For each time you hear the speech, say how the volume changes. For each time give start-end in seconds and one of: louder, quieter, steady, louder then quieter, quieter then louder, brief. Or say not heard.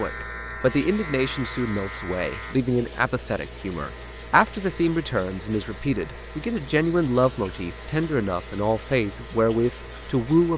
0.0-10.5 steady.